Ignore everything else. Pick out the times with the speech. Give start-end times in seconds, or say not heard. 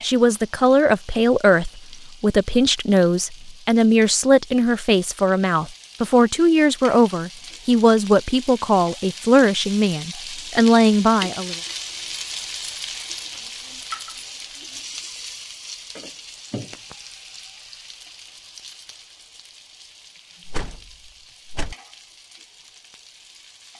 0.0-11.6.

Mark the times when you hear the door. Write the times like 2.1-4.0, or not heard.
20.4-21.8.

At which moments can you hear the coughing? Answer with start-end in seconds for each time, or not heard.
not heard.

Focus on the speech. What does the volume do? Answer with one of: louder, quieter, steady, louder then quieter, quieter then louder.
steady.